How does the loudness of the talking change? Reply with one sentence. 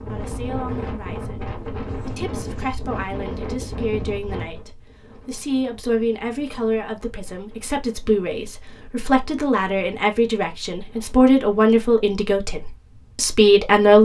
The loudness of the talking goes up.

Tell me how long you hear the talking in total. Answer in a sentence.
The talking can be heard for 14 seconds in total.